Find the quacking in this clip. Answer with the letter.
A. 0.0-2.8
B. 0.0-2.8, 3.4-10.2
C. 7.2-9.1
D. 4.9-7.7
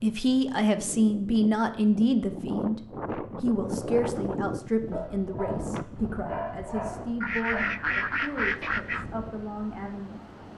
C.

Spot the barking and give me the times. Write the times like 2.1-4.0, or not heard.
4.9-7.7.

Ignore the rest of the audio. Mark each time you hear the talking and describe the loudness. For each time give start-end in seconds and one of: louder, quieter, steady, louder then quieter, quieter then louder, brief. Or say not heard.
0.0-2.8 brief
3.4-10.2 quieter.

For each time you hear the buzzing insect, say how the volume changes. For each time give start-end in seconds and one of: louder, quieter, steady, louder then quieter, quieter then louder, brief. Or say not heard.
not heard.